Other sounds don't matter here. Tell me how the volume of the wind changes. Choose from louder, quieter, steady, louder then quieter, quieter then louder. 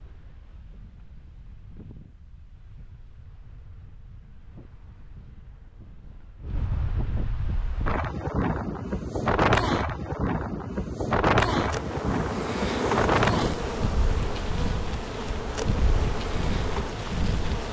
louder then quieter.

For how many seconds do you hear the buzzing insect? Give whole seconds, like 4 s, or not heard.
6 s.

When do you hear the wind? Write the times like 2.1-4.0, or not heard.
0.0-17.6.